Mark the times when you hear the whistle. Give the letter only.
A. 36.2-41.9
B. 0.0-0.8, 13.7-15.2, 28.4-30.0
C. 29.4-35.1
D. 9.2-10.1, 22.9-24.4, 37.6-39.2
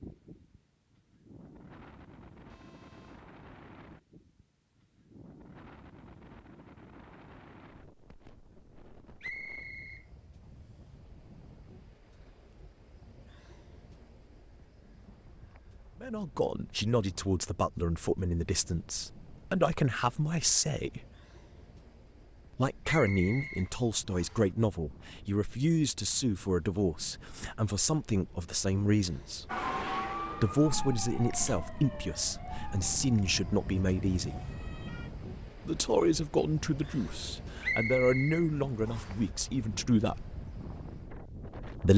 D.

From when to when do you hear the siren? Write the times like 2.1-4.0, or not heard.
29.4-35.1.